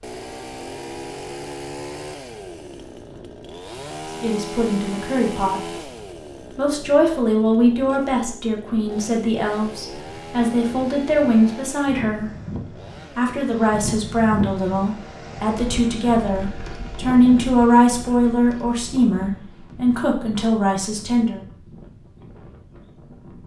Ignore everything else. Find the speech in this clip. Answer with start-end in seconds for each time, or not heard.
4.2-5.8, 6.5-12.3, 13.1-21.4.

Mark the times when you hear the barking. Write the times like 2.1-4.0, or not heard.
not heard.